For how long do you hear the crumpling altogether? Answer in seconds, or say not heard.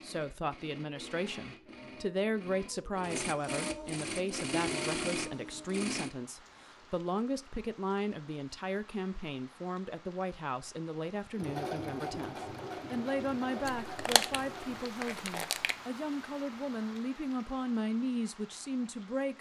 2 s.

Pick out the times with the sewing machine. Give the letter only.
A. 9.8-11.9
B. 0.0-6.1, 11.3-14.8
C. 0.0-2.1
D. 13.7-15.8
B.